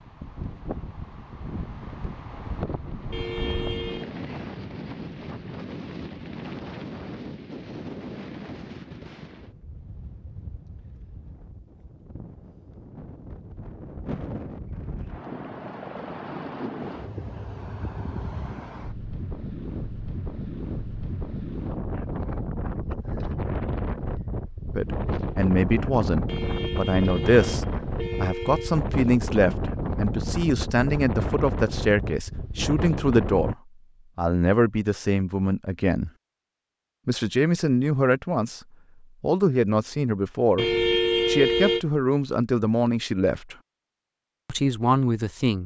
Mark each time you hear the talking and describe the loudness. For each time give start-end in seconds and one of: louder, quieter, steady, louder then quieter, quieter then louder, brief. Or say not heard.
24.8-33.5 steady
34.1-36.1 brief
37.0-38.6 brief
39.2-43.5 steady
44.5-45.6 brief.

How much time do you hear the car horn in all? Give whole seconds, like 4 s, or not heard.
5 s.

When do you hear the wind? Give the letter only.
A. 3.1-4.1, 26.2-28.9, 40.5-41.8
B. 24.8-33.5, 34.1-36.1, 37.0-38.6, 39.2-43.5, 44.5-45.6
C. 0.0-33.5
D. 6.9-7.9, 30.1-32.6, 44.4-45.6
C.